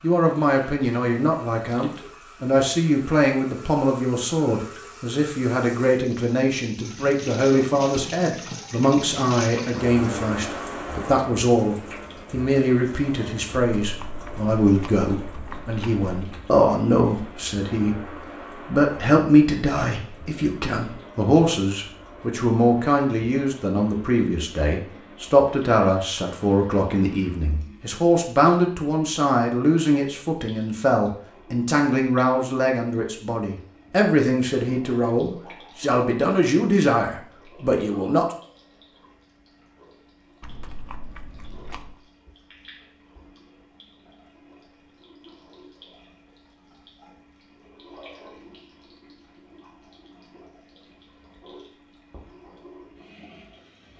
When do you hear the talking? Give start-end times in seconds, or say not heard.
0.0-38.4.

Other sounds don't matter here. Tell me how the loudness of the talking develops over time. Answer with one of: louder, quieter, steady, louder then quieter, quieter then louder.
steady.